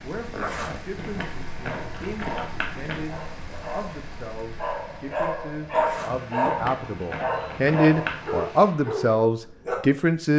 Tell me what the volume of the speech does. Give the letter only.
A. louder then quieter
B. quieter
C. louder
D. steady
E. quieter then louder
C.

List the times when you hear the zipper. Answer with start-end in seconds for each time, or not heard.
0.3-0.8, 5.7-6.2.